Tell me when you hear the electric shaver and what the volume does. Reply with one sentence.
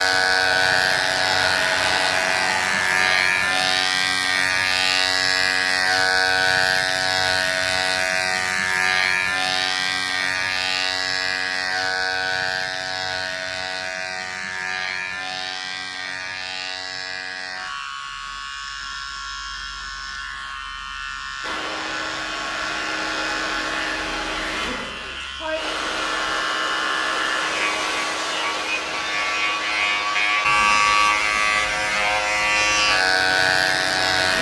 You can hear the electric shaver from 0.0 to 34.3 s, getting quieter then louder.